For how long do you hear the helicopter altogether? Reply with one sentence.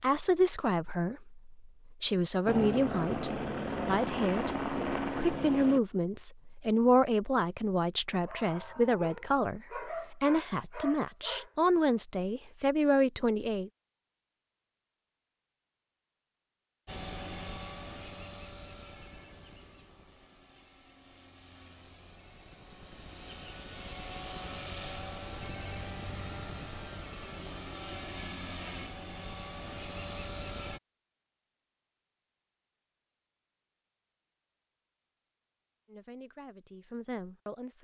You can hear the helicopter for 17 seconds altogether.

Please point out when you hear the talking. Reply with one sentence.
You can hear the talking from 0.0 to 13.7 s and from 35.9 to 37.7 s.